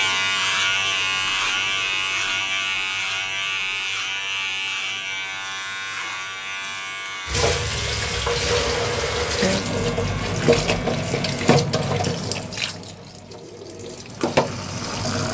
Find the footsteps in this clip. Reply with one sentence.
You can't hear the footsteps here.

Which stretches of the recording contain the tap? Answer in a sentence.
The tap can be heard from 7.2 to 15.2 s.